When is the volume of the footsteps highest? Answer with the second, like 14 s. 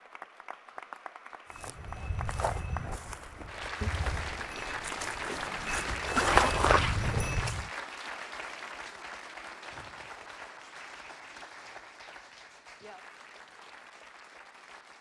6 s.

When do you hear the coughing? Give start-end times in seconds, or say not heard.
3.8-4.5.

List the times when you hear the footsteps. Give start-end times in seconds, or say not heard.
1.5-7.7.